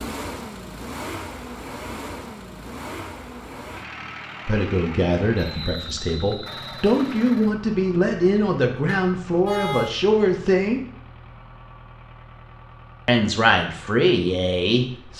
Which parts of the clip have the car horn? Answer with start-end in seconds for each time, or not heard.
8.8-9.9.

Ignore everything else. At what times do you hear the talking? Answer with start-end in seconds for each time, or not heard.
4.5-10.8, 13.1-15.1.